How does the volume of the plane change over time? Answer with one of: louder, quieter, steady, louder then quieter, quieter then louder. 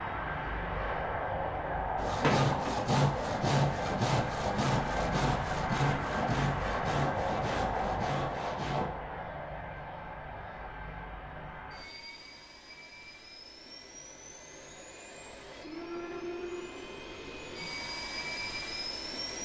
quieter then louder.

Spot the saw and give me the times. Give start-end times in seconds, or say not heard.
1.9-8.9.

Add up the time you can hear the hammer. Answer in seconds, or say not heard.
not heard.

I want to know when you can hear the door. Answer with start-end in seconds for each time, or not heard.
2.2-2.8.